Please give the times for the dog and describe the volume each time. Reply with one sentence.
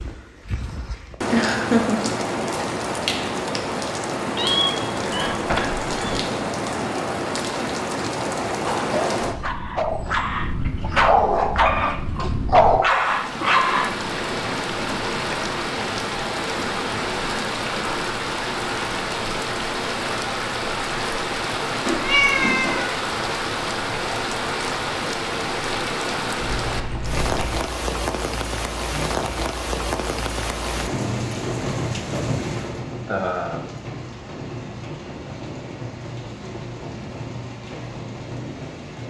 The dog can be heard from 8.5 to 13.9 s, getting louder.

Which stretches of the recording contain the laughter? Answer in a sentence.
You can hear the laughter from 1.3 to 2.1 s and from 33.0 to 33.6 s.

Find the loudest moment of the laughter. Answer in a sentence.
The loudest moment of the laughter is at 2 seconds.